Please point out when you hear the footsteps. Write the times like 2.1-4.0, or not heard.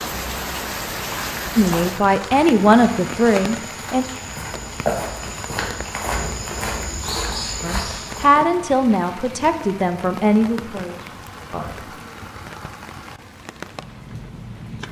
1.0-8.3.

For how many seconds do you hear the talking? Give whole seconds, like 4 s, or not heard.
7 s.